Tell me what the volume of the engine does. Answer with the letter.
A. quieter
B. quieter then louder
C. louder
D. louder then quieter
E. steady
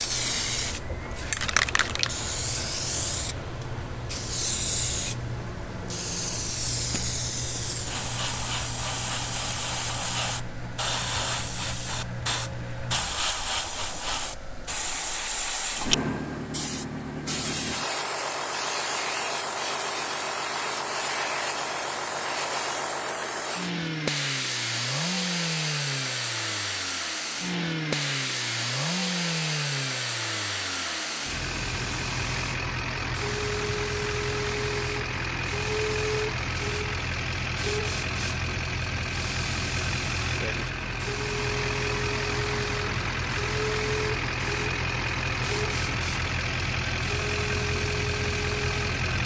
C.